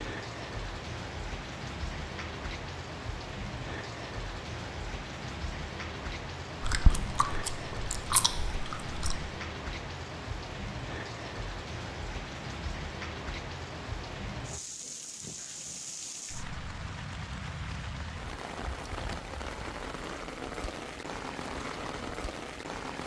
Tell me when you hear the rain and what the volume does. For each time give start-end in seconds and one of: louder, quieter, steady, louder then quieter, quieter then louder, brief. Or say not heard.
0.0-23.0 steady.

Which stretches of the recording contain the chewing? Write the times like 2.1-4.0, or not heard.
6.6-9.2.